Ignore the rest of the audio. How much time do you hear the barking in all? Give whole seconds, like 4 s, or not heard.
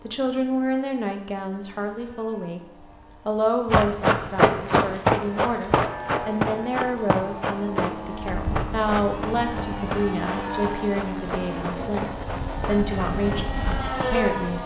not heard.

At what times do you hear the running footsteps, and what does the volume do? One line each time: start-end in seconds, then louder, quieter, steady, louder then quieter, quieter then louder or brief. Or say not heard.
3.6-14.1 quieter.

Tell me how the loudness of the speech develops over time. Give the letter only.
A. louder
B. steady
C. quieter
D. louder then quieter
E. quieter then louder
B.